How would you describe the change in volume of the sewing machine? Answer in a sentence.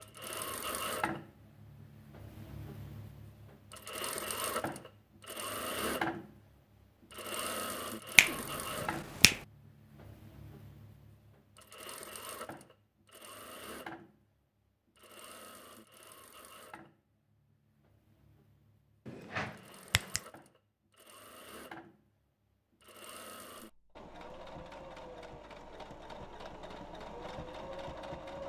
The volume of the sewing machine goes down, then up.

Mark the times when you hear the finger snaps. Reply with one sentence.
The finger snaps can be heard from 8.2 to 9.4 s and from 19.1 to 20.2 s.